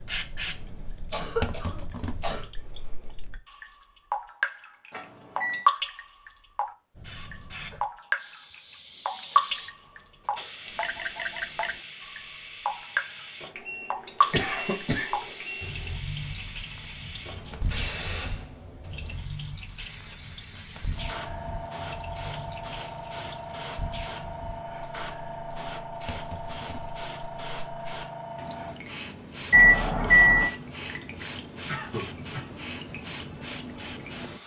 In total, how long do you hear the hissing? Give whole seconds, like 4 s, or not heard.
30 s.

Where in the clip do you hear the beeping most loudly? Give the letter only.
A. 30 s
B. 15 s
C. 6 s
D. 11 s
A.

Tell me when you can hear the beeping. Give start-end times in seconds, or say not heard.
4.9-5.7, 13.6-15.9, 29.5-30.5.